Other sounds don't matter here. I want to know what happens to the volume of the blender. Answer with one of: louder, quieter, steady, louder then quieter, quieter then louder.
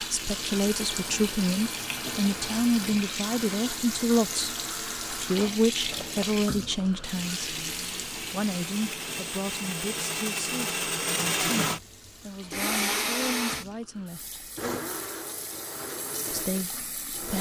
louder then quieter.